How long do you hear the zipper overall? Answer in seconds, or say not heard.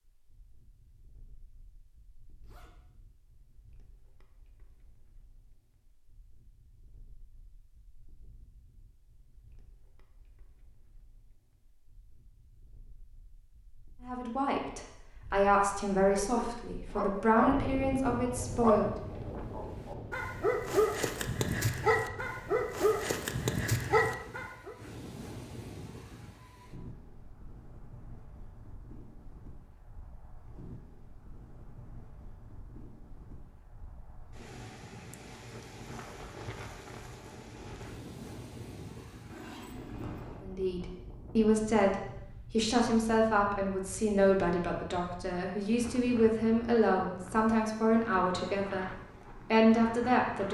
2 s.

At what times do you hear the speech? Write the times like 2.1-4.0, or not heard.
14.0-18.9, 40.4-50.4.